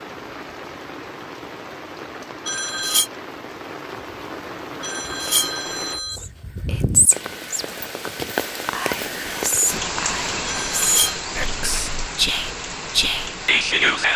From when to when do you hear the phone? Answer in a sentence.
The phone can be heard from 2.5 to 3.1 s, from 4.8 to 6.2 s and from 10.4 to 11.2 s.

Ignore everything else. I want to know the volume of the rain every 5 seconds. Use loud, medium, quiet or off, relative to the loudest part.
medium, loud, loud.